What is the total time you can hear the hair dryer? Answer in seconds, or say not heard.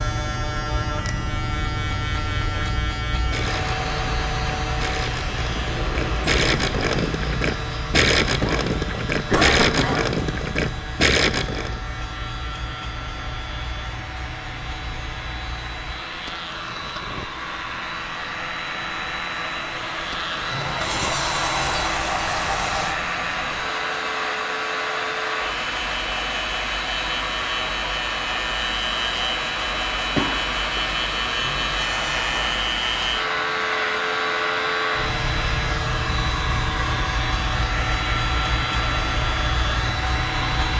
37 s.